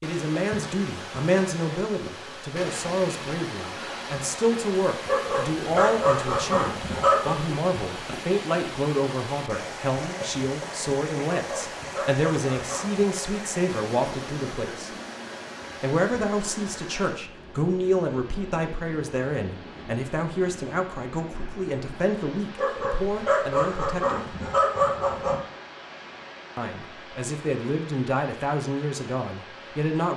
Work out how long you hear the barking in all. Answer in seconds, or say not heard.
7 s.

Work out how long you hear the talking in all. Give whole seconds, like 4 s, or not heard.
27 s.